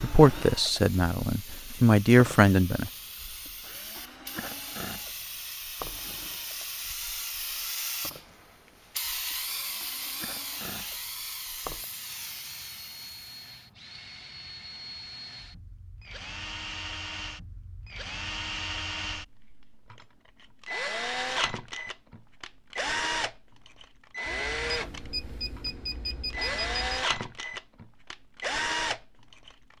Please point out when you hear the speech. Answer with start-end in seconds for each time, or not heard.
0.0-2.9.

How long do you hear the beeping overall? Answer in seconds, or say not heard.
3 s.